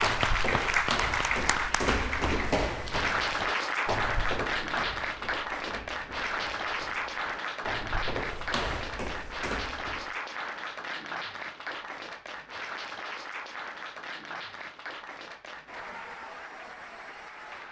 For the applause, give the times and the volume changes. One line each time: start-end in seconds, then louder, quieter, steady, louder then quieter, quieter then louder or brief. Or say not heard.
0.0-17.6 quieter.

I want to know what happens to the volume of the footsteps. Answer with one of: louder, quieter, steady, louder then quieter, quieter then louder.
quieter then louder.